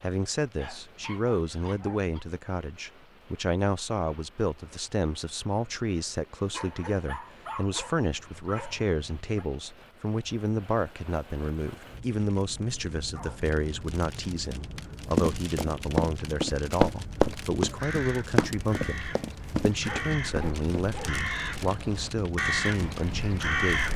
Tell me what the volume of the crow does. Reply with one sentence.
The volume of the crow goes up.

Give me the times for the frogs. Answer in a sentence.
You can't hear the frogs here.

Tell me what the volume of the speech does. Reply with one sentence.
The loudness of the speech stays about the same.